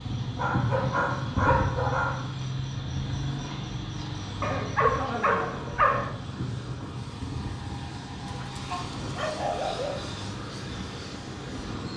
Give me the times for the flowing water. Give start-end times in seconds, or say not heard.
not heard.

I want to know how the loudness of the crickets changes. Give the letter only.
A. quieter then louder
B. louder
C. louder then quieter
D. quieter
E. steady
D.